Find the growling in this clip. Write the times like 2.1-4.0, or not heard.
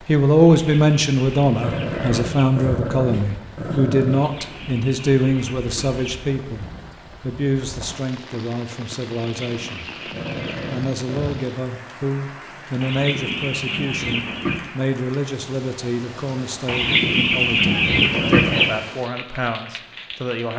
1.6-4.2, 10.1-11.3, 18.1-18.9.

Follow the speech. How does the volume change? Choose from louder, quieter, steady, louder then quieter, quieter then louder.
quieter.